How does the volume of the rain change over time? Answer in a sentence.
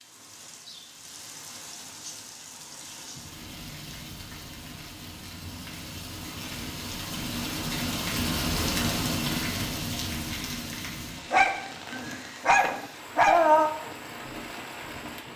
The loudness of the rain goes up, then down.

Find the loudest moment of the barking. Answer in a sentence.
The volume of the barking peaks at 13 seconds.